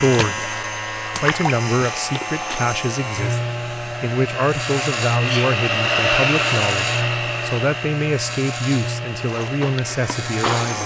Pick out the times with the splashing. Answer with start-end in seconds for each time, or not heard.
0.0-2.6, 9.2-10.8.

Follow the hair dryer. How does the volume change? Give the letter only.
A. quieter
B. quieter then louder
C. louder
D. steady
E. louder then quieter
E.